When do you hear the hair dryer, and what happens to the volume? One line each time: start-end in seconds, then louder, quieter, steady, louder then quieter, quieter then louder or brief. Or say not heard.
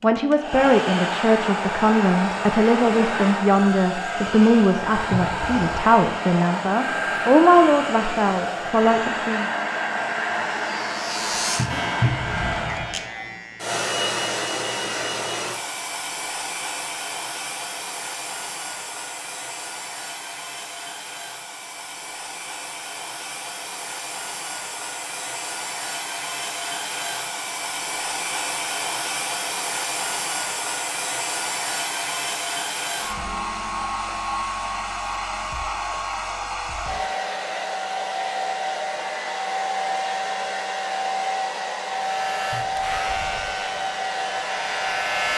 0.0-45.3 quieter then louder.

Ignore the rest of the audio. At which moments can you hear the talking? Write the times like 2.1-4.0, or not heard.
0.0-9.4.